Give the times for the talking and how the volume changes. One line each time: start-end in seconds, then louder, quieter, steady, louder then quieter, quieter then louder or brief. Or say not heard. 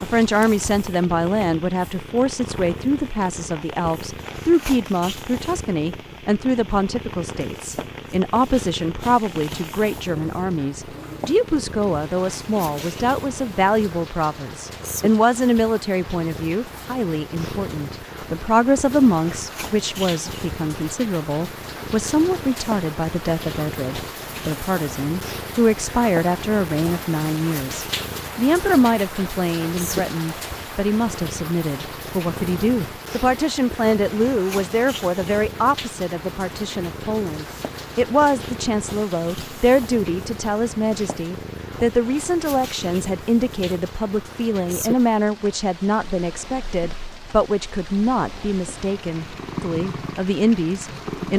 0.0-51.3 steady.